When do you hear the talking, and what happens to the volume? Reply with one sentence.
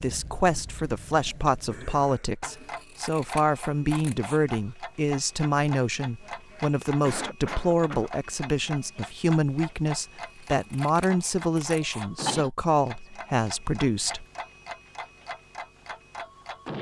The talking can be heard from 0.0 to 14.2 s, at a steady volume.